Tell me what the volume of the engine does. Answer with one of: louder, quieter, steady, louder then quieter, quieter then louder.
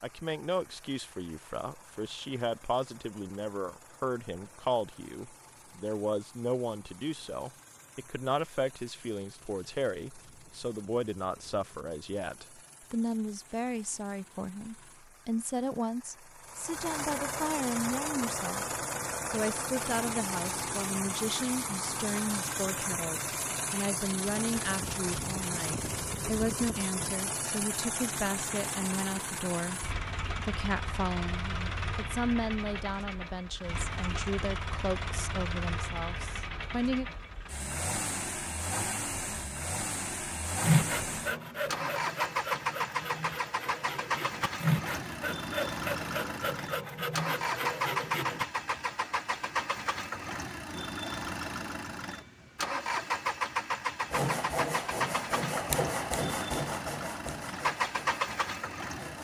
louder.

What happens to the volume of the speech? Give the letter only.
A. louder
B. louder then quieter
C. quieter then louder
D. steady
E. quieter
D.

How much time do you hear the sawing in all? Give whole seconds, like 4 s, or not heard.
13 s.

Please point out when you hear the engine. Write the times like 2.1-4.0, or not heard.
0.0-59.2.